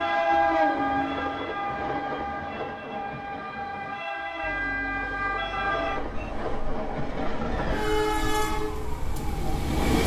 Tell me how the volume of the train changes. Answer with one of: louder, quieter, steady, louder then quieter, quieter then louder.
quieter then louder.